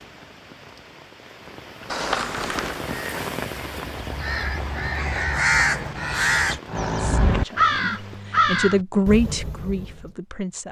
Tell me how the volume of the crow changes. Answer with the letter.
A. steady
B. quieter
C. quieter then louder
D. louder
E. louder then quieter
E.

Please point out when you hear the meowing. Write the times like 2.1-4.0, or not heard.
1.9-2.9.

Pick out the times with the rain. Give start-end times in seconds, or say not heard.
0.0-8.3.